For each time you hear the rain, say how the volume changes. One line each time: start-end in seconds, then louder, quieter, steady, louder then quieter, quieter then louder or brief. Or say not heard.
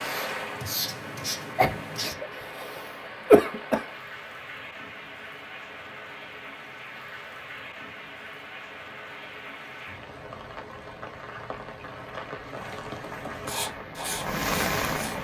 0.0-15.2 louder.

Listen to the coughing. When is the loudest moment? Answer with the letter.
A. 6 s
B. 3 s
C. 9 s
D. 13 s
B.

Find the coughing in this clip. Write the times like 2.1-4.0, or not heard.
1.6-3.9.